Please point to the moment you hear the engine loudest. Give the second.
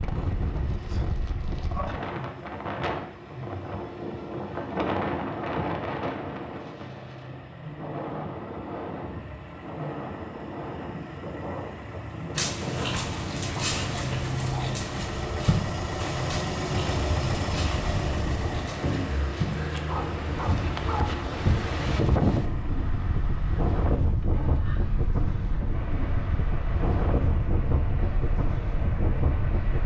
17 s.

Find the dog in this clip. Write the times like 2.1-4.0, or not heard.
12.3-21.1.